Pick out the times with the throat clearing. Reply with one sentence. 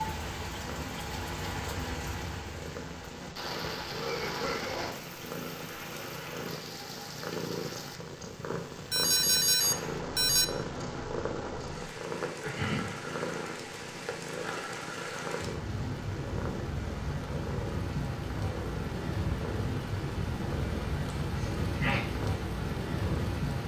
The throat clearing can be heard from 3.9 to 5.0 s, from 12.4 to 12.9 s and from 21.4 to 22.1 s.